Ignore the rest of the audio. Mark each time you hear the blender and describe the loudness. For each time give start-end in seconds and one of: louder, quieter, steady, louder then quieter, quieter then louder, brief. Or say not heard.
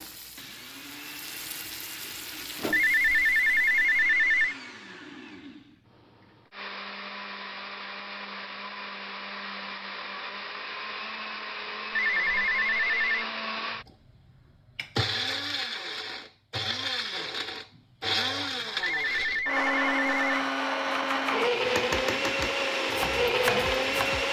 0.3-24.2 louder.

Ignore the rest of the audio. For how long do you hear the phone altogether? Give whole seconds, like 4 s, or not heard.
4 s.